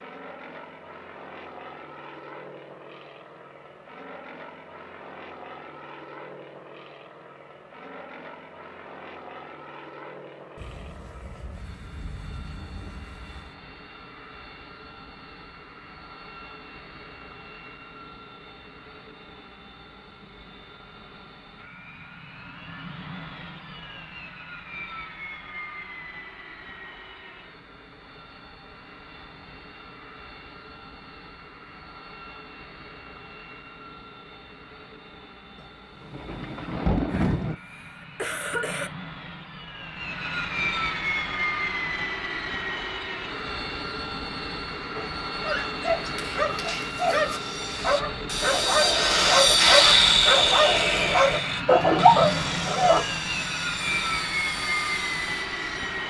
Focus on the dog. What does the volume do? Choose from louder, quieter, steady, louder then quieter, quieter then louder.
louder.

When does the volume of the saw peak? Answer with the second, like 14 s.
50 s.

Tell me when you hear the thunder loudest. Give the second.
37 s.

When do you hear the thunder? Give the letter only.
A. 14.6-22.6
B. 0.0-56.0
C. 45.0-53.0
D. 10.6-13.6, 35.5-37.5
D.